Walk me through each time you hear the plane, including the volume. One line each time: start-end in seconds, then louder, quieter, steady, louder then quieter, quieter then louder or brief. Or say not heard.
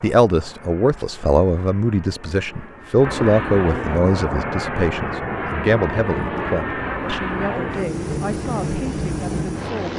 0.0-9.9 louder.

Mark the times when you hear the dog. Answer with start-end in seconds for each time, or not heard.
not heard.